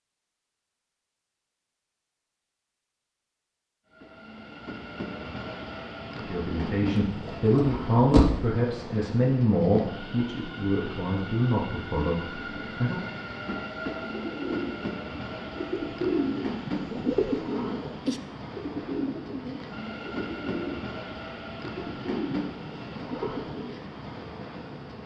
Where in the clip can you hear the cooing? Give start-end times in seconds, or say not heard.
14.0-23.9.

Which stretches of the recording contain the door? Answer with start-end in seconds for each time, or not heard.
7.0-8.4.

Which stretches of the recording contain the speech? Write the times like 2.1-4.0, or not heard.
6.2-13.1.